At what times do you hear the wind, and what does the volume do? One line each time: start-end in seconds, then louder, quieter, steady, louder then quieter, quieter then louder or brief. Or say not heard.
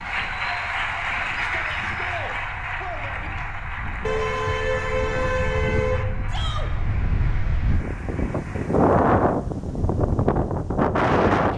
0.0-11.5 louder.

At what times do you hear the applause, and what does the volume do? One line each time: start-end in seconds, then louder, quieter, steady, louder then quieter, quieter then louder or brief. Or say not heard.
0.0-8.9 quieter.